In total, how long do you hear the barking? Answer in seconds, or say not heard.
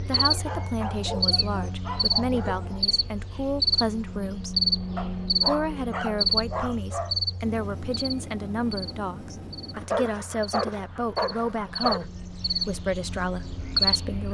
7 s.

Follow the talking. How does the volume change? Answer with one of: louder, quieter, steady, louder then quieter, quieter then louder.
steady.